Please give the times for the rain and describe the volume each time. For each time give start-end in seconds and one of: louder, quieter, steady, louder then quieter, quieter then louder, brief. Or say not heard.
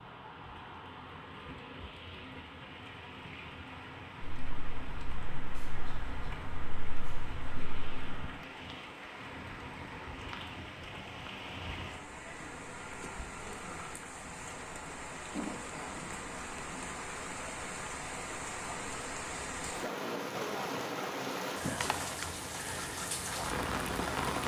0.0-24.4 louder.